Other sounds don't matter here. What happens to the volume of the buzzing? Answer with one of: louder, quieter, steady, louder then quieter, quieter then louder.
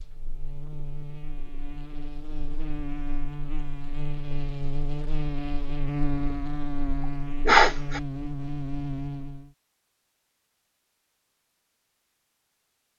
louder.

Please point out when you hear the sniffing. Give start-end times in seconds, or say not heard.
7.5-8.0.